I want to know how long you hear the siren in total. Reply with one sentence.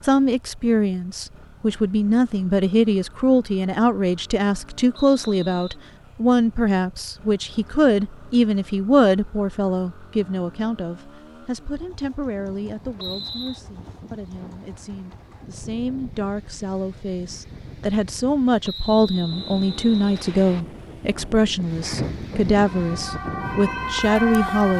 The siren can be heard for 2 seconds in total.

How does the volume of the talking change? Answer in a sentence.
The loudness of the talking goes down, then up.